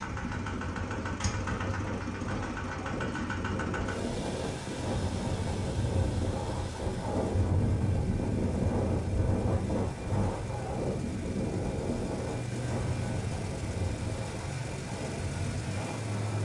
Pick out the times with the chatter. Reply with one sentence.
You can't hear the chatter here.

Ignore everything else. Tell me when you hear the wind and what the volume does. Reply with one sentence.
You can hear the wind from 0.0 to 16.4 s, getting louder then quieter.